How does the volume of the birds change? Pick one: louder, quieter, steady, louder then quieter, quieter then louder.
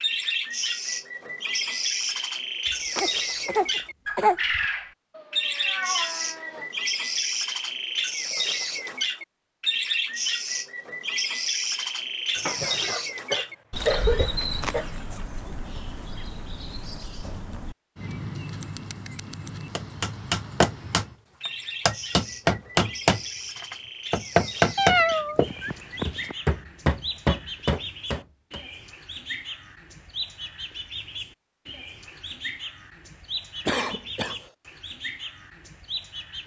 quieter.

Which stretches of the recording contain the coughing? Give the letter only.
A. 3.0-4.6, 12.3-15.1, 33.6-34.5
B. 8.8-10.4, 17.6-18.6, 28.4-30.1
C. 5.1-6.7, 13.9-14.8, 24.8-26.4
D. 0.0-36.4
A.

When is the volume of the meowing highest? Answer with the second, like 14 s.
25 s.